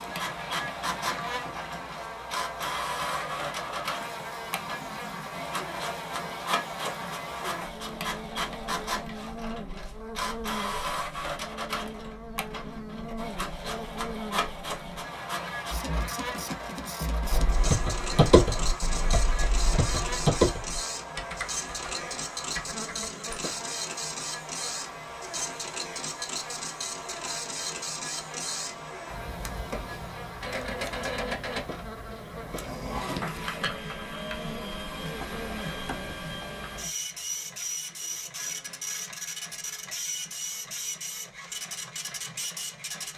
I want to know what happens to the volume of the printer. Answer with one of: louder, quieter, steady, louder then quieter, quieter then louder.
steady.